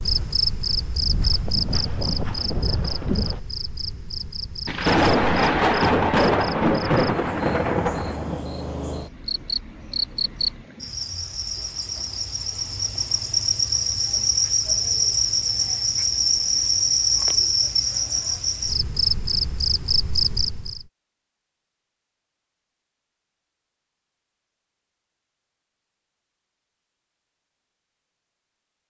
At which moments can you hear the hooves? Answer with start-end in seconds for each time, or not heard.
0.0-3.4.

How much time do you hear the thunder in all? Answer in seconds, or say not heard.
4 s.